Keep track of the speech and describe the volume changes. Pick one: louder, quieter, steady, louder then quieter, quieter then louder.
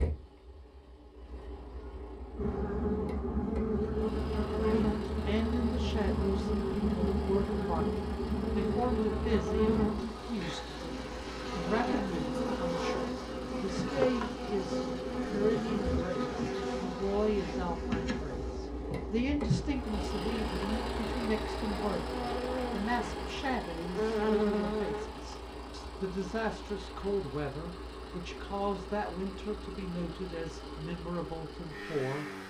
steady.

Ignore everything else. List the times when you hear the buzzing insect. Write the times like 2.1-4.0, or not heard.
2.4-25.1.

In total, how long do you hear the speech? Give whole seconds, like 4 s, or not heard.
28 s.